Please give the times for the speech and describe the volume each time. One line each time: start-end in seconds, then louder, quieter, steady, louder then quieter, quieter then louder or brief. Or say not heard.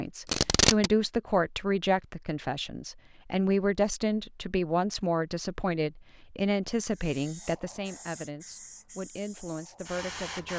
0.0-10.5 quieter.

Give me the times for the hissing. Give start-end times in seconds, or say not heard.
6.9-10.5.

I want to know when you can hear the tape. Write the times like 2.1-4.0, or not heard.
0.2-0.9.